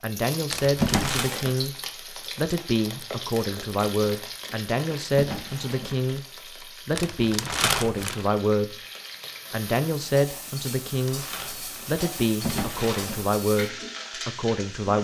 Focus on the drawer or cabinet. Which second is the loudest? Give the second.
1 s.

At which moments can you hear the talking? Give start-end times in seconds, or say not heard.
0.0-8.8, 9.5-14.9.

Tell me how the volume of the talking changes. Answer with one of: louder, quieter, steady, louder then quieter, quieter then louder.
steady.